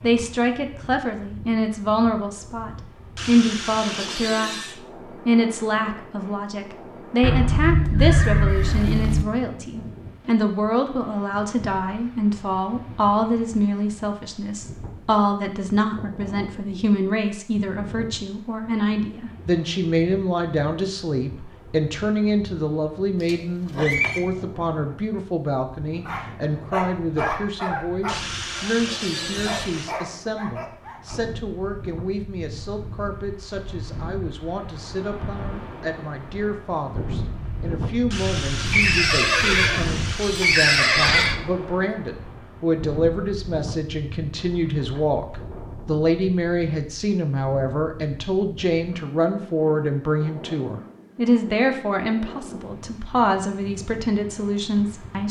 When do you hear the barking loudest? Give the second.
27 s.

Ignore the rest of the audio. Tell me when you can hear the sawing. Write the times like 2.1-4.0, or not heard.
3.1-4.8, 28.1-29.9, 38.1-40.8.